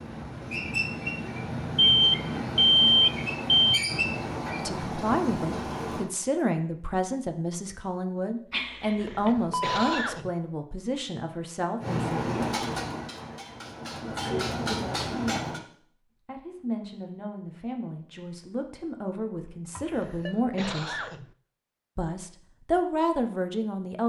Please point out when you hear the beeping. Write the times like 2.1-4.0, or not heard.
1.8-3.8, 8.5-10.0, 19.8-20.4.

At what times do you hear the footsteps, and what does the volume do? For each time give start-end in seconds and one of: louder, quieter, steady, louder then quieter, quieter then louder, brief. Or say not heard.
not heard.